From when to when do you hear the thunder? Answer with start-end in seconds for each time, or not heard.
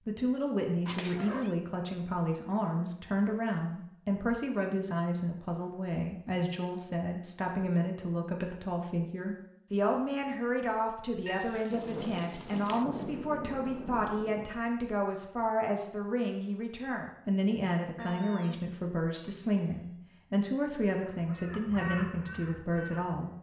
11.7-14.5.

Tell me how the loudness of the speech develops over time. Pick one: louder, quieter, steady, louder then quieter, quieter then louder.
steady.